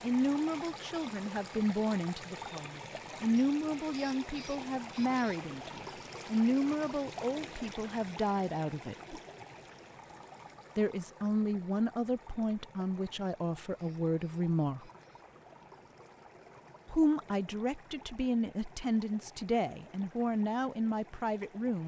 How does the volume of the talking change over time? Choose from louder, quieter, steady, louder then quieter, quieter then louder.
steady.